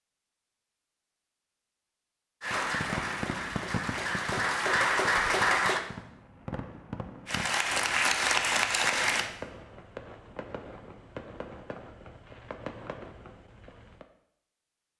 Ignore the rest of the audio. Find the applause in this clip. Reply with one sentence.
You can hear the applause from 2.4 to 5.8 s and from 7.2 to 9.3 s.